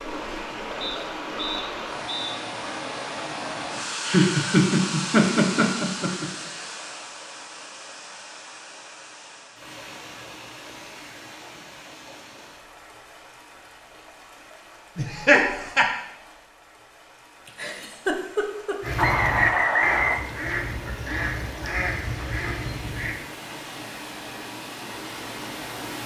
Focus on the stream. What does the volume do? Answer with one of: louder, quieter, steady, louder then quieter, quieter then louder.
quieter then louder.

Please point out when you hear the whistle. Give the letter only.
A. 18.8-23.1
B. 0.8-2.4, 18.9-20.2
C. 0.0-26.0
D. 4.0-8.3
B.